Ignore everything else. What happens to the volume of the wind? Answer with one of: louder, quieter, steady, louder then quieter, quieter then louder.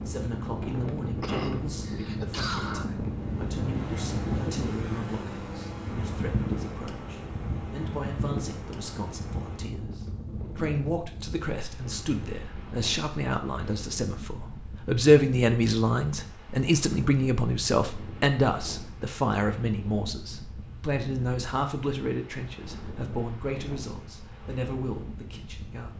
quieter.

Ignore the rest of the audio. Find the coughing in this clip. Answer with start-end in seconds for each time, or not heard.
1.2-2.9.